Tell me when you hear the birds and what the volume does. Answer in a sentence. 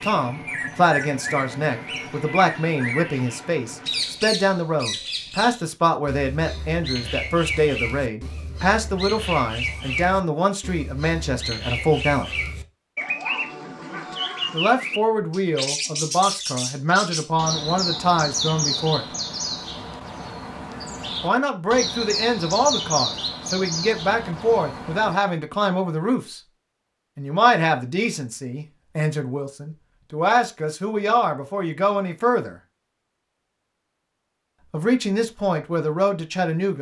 The birds can be heard from 0.0 to 25.1 s, at a steady volume.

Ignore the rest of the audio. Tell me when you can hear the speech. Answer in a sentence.
You can hear the speech from 0.0 to 12.3 s, from 14.5 to 19.1 s, from 21.2 to 26.4 s, from 27.1 to 32.6 s and from 34.7 to 36.7 s.